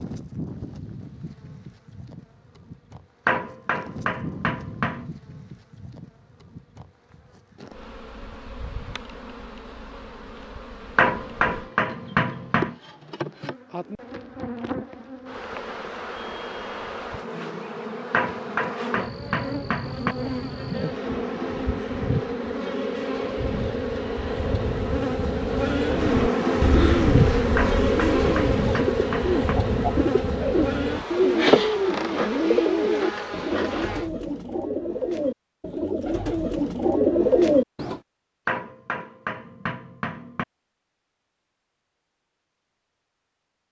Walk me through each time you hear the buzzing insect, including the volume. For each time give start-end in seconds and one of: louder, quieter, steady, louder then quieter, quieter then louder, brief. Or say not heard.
0.0-34.1 louder.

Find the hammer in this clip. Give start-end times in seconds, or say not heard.
3.2-5.1, 10.9-12.8, 18.1-20.1, 27.6-29.6, 38.5-40.5.